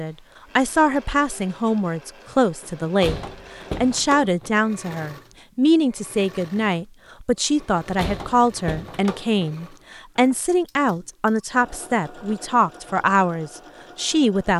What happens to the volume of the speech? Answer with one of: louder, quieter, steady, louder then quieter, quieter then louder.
steady.